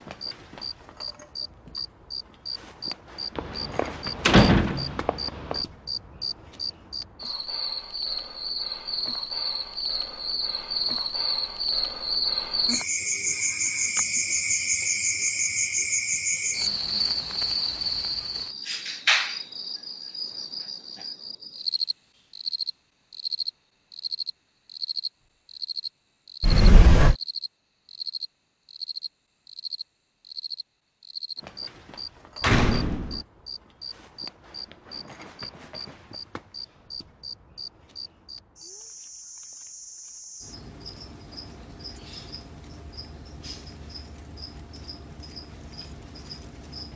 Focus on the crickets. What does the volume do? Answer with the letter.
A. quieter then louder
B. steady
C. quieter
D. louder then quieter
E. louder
D.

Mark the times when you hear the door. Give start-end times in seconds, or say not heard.
3.4-5.6, 26.4-27.1, 32.4-33.2.